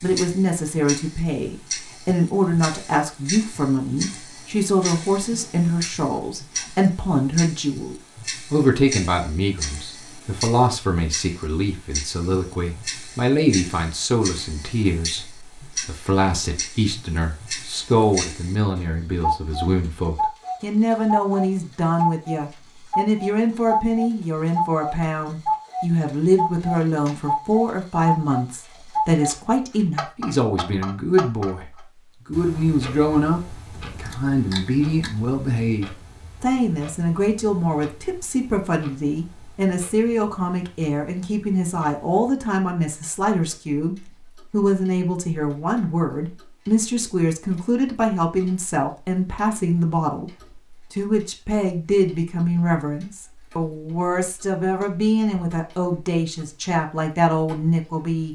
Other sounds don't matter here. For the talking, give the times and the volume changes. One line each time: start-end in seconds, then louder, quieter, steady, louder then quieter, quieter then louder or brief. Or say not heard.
0.0-58.2 steady.